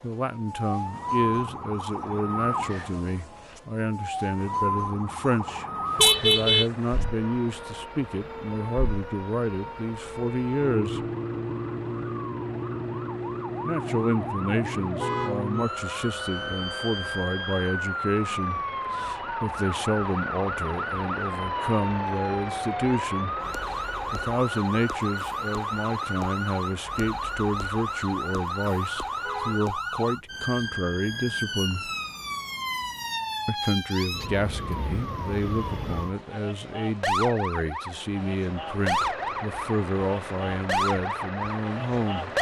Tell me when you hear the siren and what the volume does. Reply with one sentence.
You can hear the siren from 0.0 to 42.3 s, at a steady volume.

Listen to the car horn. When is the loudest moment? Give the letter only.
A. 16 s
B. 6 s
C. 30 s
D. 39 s
B.